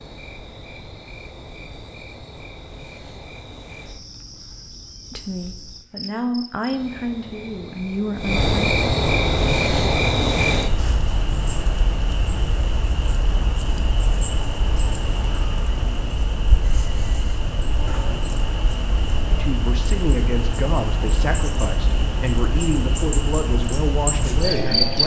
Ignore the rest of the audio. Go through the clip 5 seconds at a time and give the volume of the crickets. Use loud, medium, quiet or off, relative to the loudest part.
quiet, loud, loud, medium, loud.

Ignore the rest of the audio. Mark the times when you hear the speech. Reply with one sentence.
You can hear the speech from 5.1 to 8.5 s and from 19.3 to 25.0 s.